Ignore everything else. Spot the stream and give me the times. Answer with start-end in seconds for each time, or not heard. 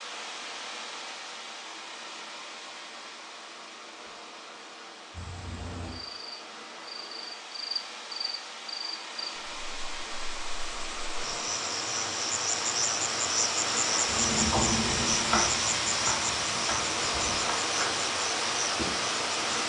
0.0-19.6.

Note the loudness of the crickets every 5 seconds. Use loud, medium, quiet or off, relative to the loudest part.
off, medium, loud, loud.